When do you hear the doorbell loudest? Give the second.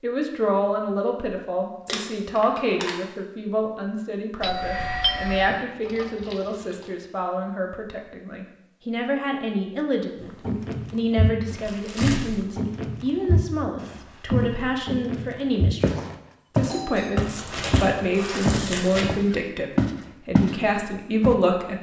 5 s.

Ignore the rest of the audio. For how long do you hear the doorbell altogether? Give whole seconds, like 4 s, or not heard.
2 s.